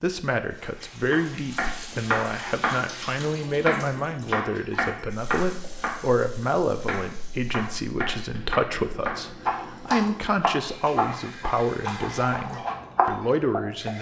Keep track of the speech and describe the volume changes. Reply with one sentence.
The volume of the speech stays about the same.